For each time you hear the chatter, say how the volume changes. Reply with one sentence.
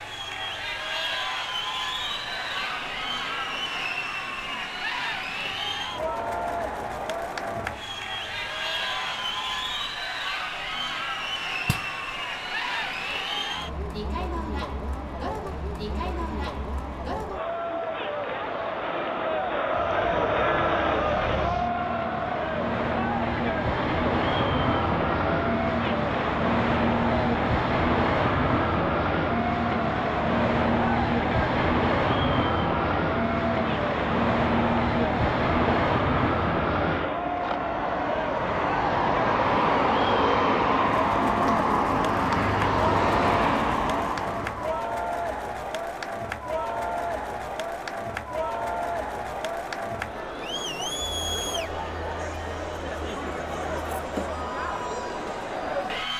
The chatter can be heard from 0.0 to 56.1 s, at a steady volume.